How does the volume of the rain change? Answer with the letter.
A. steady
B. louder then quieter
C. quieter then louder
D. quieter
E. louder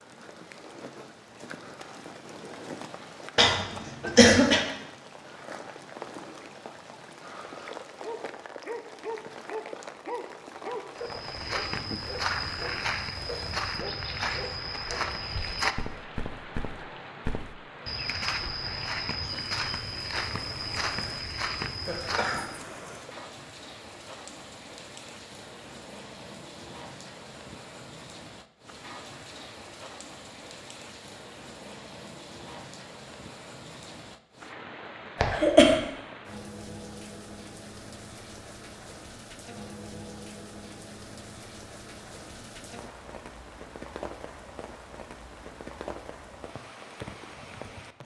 A.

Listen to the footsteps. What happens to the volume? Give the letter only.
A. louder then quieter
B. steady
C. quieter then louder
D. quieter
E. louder
B.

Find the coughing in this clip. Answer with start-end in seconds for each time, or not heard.
3.4-4.6, 21.9-23.2, 35.1-35.8.